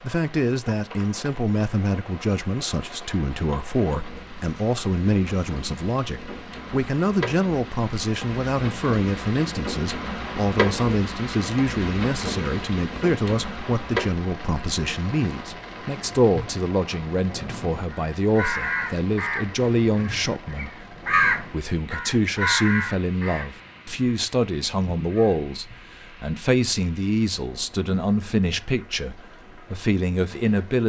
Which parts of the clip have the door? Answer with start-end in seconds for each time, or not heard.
not heard.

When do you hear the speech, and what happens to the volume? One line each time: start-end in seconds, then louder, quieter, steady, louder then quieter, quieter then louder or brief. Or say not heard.
0.0-30.8 steady.